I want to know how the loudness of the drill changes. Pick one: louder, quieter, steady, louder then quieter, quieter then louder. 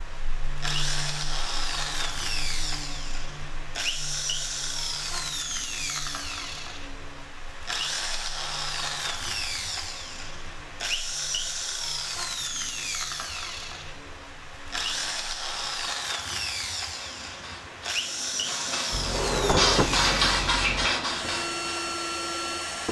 steady.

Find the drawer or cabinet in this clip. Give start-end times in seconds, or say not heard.
18.9-20.9.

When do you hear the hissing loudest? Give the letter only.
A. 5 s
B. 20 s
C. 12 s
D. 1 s
B.